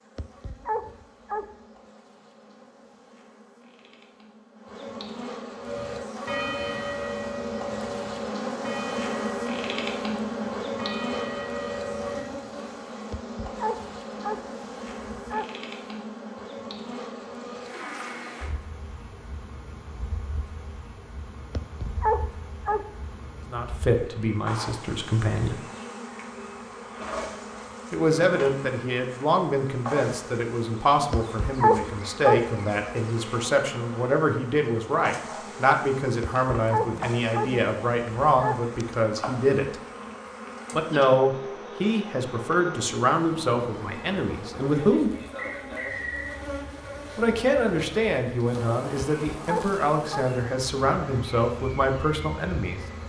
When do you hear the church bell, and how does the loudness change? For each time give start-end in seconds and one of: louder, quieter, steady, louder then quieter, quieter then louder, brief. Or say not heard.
5.6-12.2 quieter then louder.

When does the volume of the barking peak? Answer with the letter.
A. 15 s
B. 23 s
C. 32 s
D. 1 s
C.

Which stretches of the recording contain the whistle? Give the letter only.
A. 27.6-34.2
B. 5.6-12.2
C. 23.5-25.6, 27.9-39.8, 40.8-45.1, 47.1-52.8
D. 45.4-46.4
D.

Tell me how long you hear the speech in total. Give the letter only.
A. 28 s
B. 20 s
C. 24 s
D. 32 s
C.